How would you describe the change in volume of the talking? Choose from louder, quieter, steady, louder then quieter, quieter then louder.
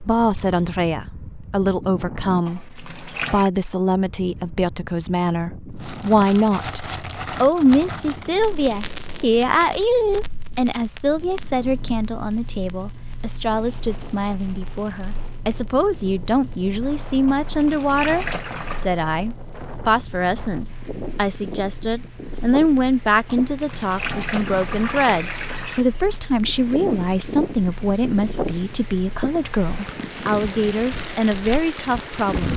steady.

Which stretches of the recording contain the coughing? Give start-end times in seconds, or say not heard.
not heard.